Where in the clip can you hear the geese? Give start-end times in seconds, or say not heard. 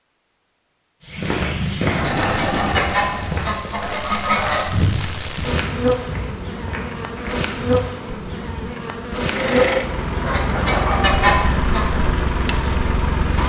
1.9-4.7, 10.2-11.8.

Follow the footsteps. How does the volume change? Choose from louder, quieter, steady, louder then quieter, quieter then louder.
quieter.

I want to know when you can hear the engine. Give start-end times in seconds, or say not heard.
1.9-3.5, 9.2-13.4.